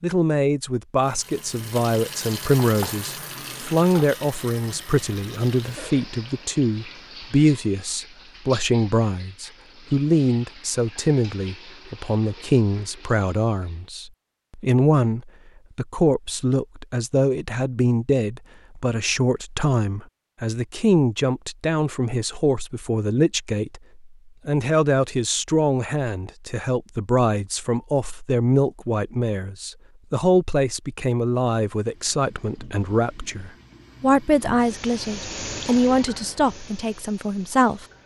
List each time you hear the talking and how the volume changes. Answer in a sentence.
You can hear the talking from 0.0 to 37.9 s, at a steady volume.